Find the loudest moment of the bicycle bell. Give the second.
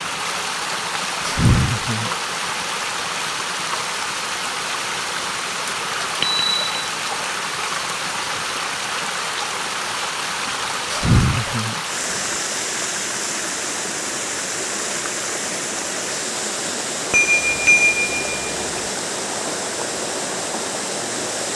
18 s.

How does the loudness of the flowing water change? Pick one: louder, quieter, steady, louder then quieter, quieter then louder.
steady.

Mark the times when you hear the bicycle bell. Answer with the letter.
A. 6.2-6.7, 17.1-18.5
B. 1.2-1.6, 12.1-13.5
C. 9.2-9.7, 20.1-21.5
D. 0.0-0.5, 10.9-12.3
A.